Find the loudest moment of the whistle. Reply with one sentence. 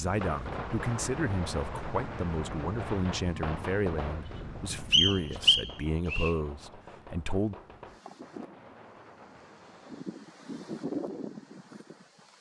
The volume of the whistle peaks at 5 seconds.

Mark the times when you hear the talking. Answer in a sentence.
The talking can be heard from 0.0 to 7.5 s.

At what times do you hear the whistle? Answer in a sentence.
You can hear the whistle from 4.9 to 6.3 s.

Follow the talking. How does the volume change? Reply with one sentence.
The loudness of the talking stays about the same.